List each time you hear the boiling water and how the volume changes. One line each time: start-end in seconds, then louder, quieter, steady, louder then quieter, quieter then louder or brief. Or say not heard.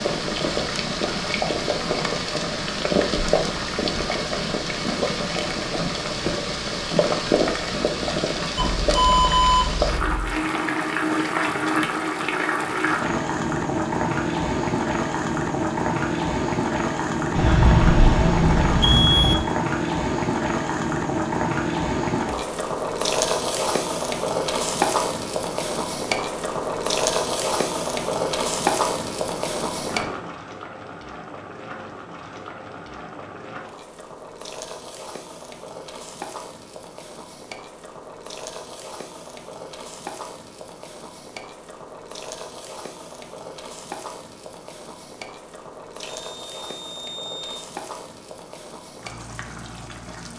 0.0-50.3 quieter.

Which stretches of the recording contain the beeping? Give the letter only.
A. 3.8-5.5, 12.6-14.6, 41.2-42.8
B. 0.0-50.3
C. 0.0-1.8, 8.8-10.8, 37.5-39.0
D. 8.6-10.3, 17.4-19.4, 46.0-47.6
D.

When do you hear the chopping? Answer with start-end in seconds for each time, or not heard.
not heard.